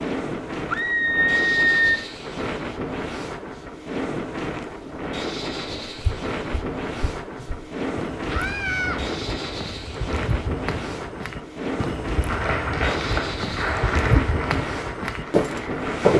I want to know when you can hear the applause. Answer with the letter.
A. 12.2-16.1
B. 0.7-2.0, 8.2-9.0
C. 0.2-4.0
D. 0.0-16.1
A.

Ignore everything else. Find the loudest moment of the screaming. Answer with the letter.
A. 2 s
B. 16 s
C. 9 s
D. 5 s
A.